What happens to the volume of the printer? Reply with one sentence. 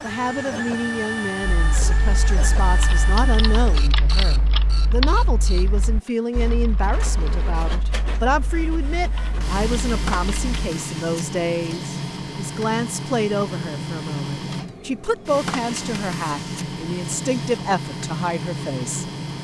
The volume of the printer goes down, then up.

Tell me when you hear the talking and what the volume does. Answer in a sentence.
The talking can be heard from 0.0 to 19.1 s, at a steady volume.